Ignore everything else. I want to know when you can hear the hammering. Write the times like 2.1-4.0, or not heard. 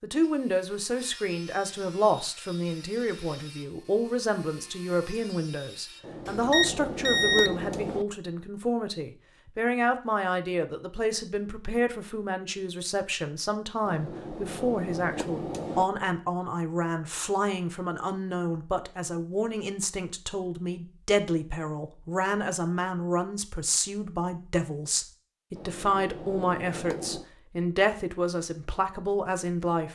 6.0-8.1, 13.8-15.8, 25.6-27.2.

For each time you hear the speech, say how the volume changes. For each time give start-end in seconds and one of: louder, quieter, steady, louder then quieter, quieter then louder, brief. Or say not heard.
0.0-29.8 steady.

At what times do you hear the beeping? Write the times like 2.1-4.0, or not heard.
6.2-7.7.